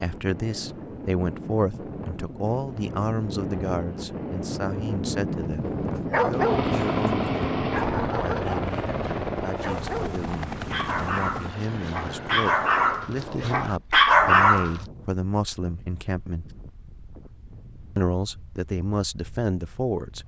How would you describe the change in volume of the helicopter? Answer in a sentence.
The volume of the helicopter goes down.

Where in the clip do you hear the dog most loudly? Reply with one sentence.
The loudest moment of the dog is at 14 seconds.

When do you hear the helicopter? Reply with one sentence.
You can hear the helicopter from 6.3 to 13.1 s.